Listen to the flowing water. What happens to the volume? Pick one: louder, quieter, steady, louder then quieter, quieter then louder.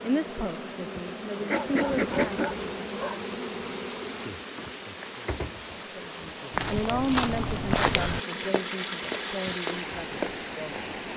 louder.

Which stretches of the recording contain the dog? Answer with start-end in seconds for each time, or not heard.
1.4-3.2.